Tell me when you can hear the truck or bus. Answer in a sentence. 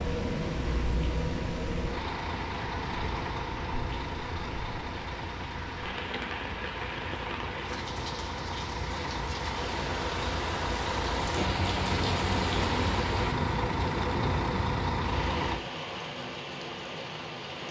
The truck or bus can be heard from 0.0 to 15.6 s.